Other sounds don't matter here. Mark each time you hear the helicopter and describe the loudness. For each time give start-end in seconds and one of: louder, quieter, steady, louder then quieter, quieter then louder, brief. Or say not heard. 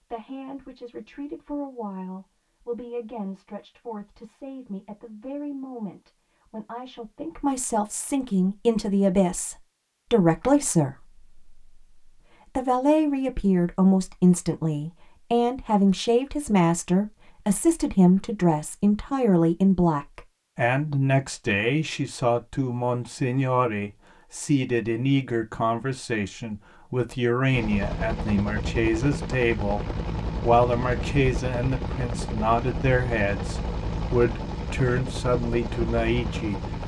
27.5-36.8 steady.